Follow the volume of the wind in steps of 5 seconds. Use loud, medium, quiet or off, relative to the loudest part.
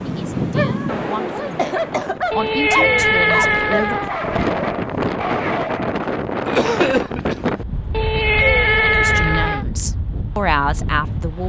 loud, loud, medium.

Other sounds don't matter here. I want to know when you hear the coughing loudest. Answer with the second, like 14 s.
7 s.